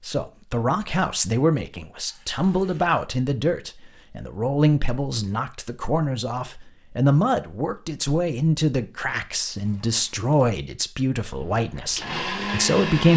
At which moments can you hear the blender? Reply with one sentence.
You can hear the blender from 11.3 to 13.1 s.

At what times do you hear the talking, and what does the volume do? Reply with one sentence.
The talking can be heard from 0.1 to 13.1 s, at a steady volume.